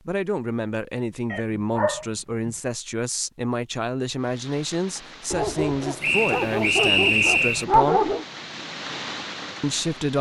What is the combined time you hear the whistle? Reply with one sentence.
You can hear the whistle for 2 seconds altogether.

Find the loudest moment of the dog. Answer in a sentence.
The volume of the dog peaks at 8 seconds.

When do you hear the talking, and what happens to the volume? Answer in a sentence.
The talking can be heard from 0.1 to 8.1 s, at a steady volume; and briefly from 9.6 to 10.1 s.